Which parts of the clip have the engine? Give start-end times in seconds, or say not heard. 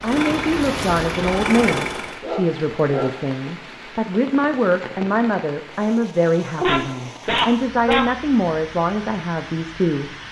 0.0-2.2.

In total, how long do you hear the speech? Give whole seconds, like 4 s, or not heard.
10 s.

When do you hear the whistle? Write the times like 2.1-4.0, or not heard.
not heard.